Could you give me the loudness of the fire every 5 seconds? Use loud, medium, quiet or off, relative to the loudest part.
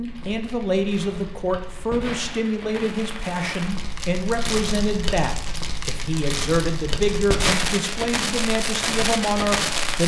medium, loud.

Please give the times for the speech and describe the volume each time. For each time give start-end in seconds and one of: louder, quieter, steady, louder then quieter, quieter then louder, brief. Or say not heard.
0.0-10.0 steady.